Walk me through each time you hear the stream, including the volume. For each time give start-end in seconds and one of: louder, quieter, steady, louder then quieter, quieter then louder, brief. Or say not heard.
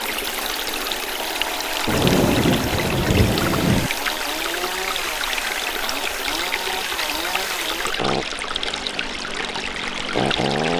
0.0-10.7 steady.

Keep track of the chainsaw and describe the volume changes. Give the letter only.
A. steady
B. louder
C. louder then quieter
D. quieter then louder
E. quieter
A.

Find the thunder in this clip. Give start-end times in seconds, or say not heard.
1.9-3.9.